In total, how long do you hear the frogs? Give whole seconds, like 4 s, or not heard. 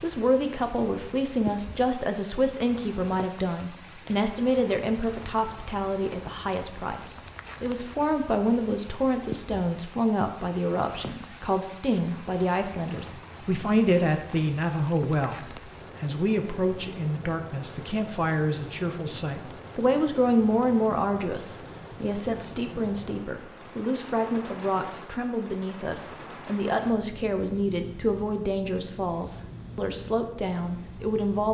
not heard.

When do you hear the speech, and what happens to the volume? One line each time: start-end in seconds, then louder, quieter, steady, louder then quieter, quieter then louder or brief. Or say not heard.
0.0-31.5 steady.